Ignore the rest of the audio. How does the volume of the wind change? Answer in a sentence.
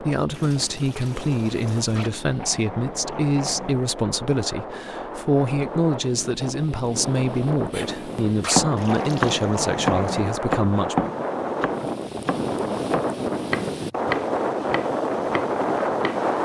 The loudness of the wind goes up.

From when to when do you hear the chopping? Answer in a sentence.
The chopping can be heard from 7.7 to 16.2 s.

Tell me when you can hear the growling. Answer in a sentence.
You can hear the growling from 1.9 to 3.9 s and from 8.4 to 10.3 s.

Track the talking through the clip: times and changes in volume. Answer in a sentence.
The talking can be heard from 0.0 to 10.9 s, at a steady volume.